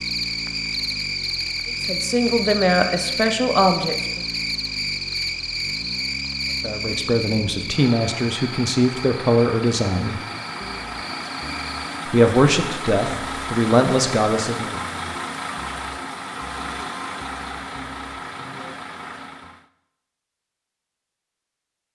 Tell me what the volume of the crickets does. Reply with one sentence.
The loudness of the crickets goes down.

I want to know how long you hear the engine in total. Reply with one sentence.
The engine can be heard for 20 seconds in total.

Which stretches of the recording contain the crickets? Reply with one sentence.
You can hear the crickets from 0.0 to 12.1 s.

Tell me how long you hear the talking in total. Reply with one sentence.
You can hear the talking for 9 seconds altogether.